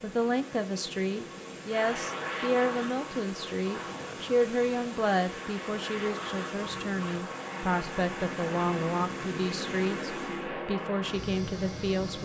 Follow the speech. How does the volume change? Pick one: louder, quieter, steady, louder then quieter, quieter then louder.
steady.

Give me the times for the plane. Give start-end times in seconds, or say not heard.
1.6-12.2.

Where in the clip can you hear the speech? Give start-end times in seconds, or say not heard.
0.0-12.2.